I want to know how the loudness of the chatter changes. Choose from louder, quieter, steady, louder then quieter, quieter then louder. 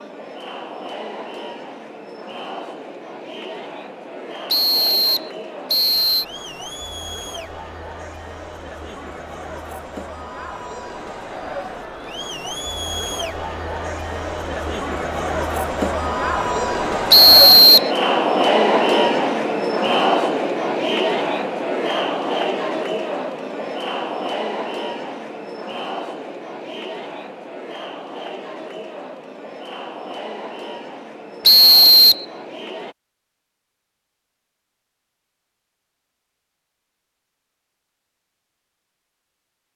louder then quieter.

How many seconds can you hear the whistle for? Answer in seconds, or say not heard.
3 s.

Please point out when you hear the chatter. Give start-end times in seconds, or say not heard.
0.0-33.0.